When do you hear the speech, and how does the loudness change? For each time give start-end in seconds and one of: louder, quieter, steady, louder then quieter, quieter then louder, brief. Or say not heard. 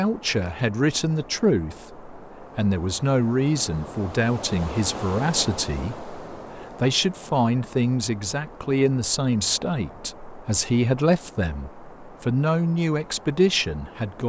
0.0-14.2 steady.